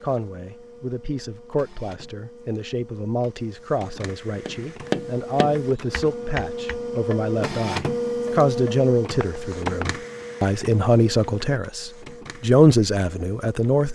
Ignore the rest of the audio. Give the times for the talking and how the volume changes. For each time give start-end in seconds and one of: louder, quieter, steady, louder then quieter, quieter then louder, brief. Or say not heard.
0.0-13.8 louder.